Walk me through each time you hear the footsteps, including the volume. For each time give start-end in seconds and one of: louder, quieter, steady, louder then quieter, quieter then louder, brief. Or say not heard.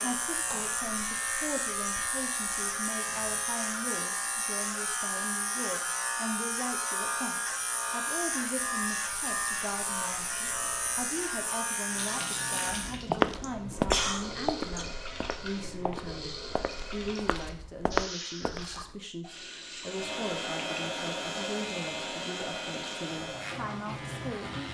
12.9-18.9 quieter then louder.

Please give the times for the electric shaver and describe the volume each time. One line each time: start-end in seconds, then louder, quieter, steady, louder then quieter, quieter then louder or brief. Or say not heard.
0.0-12.9 steady
19.8-24.6 quieter.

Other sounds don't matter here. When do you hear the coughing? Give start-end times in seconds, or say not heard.
13.4-14.8.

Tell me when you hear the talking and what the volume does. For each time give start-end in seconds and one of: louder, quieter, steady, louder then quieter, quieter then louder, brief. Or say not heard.
0.0-24.6 steady.